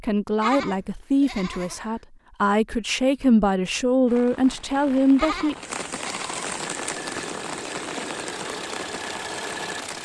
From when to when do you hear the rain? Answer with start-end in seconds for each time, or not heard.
4.0-10.0.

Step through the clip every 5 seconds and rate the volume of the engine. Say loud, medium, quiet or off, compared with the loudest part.
off, loud.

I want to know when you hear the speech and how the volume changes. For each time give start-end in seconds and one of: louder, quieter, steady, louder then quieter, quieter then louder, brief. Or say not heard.
0.0-5.5 quieter then louder.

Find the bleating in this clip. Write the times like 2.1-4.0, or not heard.
0.4-1.9, 5.2-6.5.